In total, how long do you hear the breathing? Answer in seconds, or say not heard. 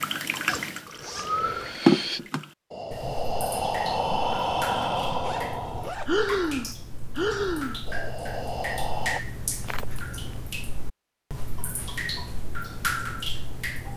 8 s.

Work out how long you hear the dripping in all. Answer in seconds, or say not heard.
14 s.